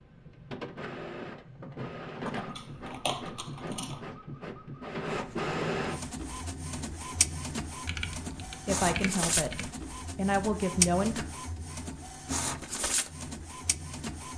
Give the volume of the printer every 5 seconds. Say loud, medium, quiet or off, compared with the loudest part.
medium, loud, loud.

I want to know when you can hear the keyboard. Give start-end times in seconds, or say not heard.
2.2-4.0, 7.8-9.7.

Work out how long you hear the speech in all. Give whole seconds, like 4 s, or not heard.
3 s.